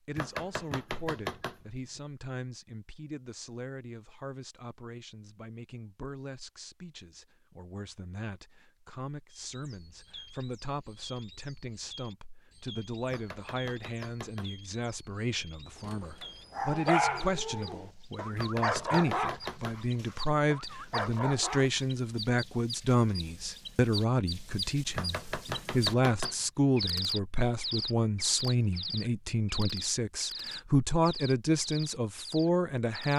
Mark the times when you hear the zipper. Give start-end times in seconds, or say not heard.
not heard.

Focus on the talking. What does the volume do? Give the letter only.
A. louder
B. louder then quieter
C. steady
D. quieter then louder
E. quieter
A.